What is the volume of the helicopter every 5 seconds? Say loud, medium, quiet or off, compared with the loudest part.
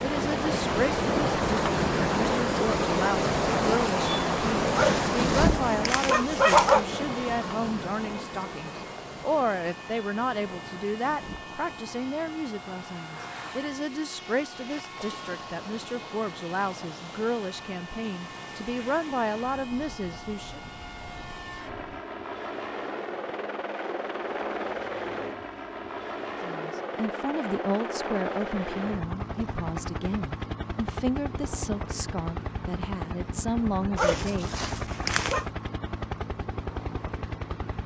loud, medium, medium, medium, loud, loud, loud, loud.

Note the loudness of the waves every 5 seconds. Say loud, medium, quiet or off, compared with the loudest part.
loud, medium, quiet, quiet, quiet, off, off, off.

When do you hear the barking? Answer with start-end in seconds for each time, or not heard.
4.7-6.8, 34.0-35.5.